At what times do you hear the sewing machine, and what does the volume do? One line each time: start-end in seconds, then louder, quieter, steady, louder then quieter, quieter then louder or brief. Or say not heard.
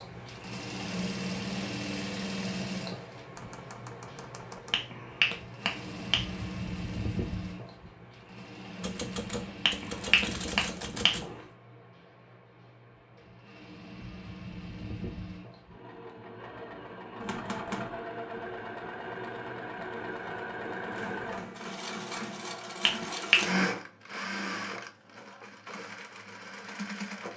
0.0-27.3 quieter then louder.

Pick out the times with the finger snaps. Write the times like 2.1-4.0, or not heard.
4.7-6.2, 9.7-11.2, 22.9-23.4.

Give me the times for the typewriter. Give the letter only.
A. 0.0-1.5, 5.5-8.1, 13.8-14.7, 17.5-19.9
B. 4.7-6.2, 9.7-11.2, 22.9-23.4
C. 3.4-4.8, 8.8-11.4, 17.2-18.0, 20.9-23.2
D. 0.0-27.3
C.